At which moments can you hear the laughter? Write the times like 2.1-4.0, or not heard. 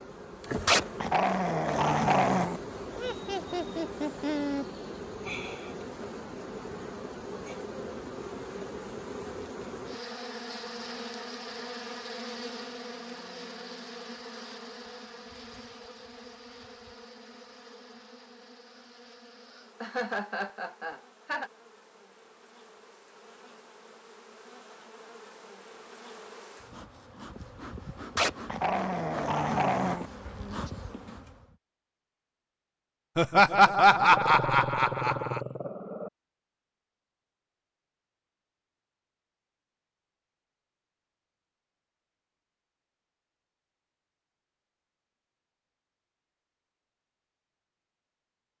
3.0-4.7, 19.8-21.5, 33.1-35.4.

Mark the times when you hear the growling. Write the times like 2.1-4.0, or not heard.
0.7-2.6, 28.1-30.1, 34.0-36.1.